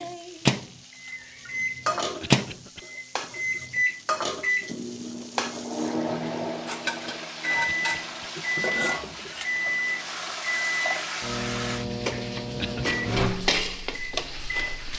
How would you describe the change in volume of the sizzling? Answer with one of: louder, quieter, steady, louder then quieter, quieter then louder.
louder.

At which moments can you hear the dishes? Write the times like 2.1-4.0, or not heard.
1.1-9.7.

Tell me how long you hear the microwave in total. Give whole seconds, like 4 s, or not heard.
15 s.